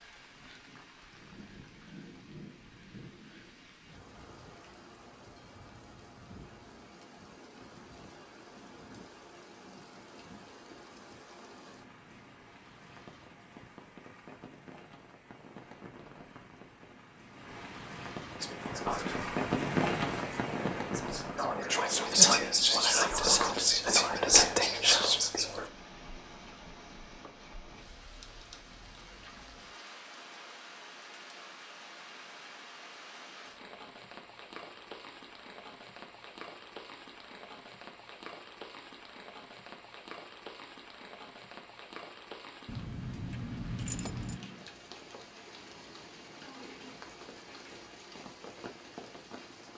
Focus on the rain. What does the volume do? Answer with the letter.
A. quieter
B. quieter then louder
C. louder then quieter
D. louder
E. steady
C.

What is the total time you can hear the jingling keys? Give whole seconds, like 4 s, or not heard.
2 s.